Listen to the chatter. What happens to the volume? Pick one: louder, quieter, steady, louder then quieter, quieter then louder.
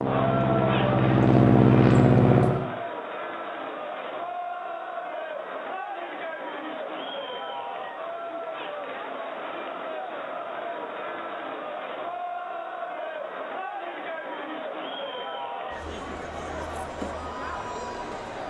steady.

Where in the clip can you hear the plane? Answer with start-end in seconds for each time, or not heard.
0.0-2.7.